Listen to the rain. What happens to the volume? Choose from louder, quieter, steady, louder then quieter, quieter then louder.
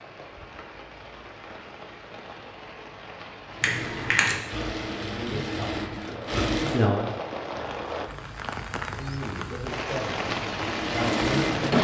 louder.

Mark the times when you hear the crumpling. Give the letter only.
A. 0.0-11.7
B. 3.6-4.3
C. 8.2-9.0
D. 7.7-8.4
B.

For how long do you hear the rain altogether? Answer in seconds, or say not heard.
12 s.